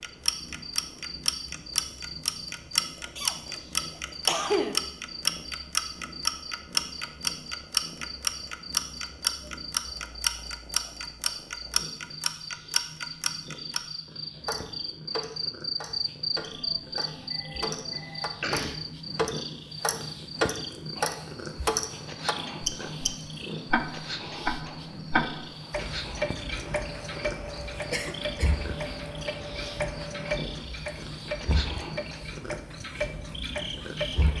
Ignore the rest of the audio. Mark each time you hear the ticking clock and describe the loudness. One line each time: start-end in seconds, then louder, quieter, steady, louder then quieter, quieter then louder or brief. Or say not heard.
0.0-34.3 quieter.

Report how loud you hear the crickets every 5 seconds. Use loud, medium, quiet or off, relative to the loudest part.
medium, medium, medium, loud, medium, medium, medium.